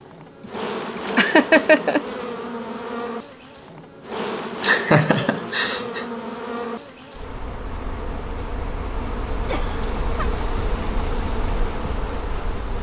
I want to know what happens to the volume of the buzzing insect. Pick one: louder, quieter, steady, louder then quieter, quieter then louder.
steady.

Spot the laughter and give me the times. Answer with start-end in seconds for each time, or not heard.
1.1-2.0, 4.6-6.0, 9.4-10.3.